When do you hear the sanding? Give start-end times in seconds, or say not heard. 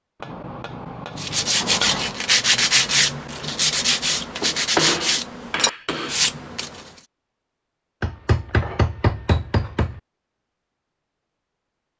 1.1-7.0.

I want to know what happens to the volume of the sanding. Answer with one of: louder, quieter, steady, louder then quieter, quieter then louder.
steady.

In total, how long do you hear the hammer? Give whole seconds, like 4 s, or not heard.
6 s.